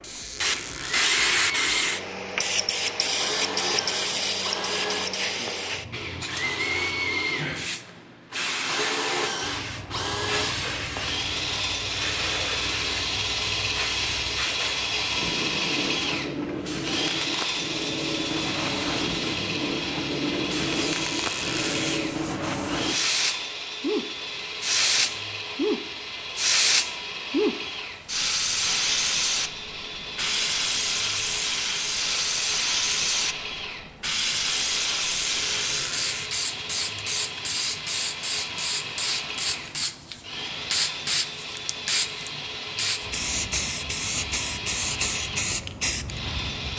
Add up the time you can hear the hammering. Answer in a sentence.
The hammering can't be heard in this clip.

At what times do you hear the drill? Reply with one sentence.
The drill can be heard from 0.0 to 46.7 s.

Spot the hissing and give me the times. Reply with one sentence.
You can hear the hissing from 0.2 to 46.7 s.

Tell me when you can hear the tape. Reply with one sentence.
You can't hear the tape here.